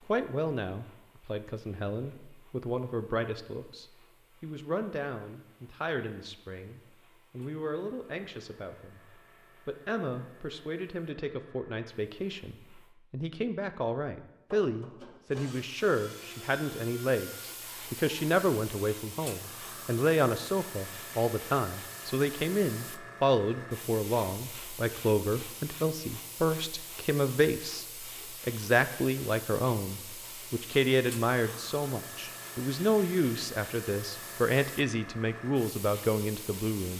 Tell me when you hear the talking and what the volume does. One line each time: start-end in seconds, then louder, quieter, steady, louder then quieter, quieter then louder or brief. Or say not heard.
0.1-36.9 louder.